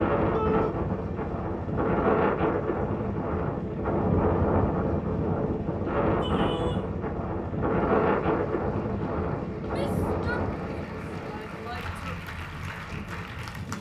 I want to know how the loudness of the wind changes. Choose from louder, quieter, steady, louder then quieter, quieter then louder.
quieter.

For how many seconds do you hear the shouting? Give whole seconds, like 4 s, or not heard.
4 s.